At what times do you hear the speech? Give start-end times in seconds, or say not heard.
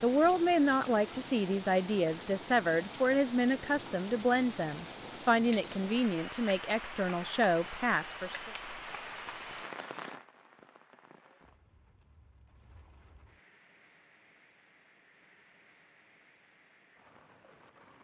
0.0-8.5.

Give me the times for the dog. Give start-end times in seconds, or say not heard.
not heard.